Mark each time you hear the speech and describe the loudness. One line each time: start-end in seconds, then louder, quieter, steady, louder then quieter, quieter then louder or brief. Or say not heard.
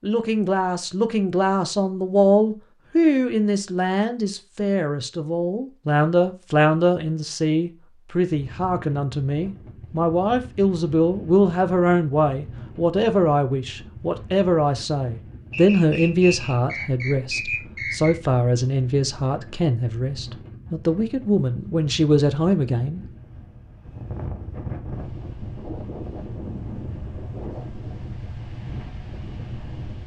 0.0-23.1 steady.